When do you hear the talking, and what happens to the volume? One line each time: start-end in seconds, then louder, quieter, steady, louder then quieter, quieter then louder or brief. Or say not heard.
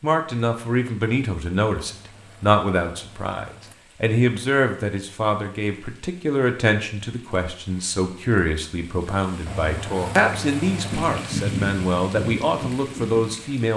0.0-13.7 steady.